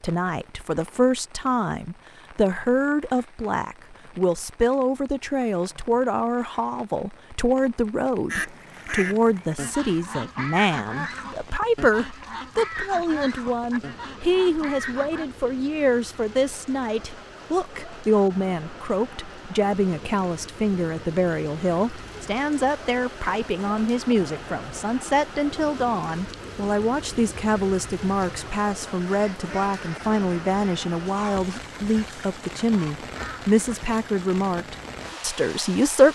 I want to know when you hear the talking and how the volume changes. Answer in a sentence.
The talking can be heard from 0.0 to 36.1 s, at a steady volume.